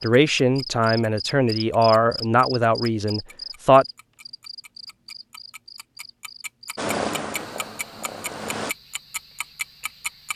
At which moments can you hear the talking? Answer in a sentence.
The talking can be heard from 0.0 to 3.9 s.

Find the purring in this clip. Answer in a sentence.
You can hear the purring from 6.8 to 8.8 s.